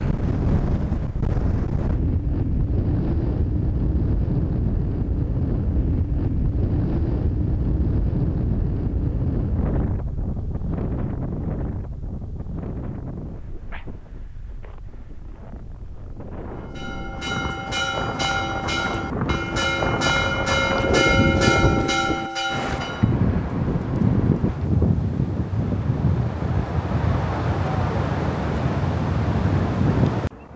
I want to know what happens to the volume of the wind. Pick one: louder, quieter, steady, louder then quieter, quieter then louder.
quieter then louder.